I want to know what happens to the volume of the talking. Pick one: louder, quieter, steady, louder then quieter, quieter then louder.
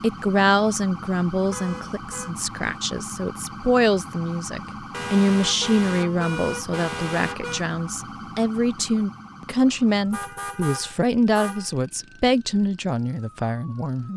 steady.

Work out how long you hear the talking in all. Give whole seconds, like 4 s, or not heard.
14 s.